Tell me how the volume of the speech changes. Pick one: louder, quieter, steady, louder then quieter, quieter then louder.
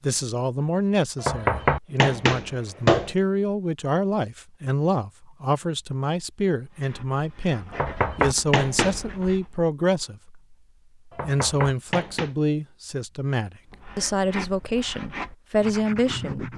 steady.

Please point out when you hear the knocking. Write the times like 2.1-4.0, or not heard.
1.2-3.1, 7.7-9.1, 11.1-12.3.